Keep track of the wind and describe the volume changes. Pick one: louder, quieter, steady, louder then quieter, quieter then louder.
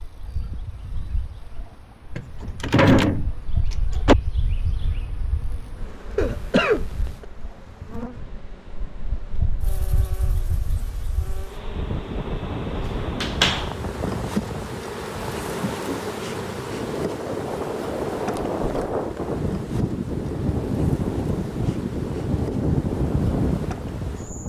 louder.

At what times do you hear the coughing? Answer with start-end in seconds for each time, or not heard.
6.2-7.2.